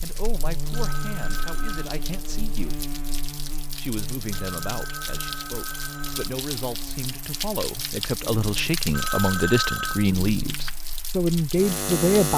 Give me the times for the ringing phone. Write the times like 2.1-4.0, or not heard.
0.7-1.9, 4.3-6.3, 8.9-10.1.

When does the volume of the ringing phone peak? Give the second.
10 s.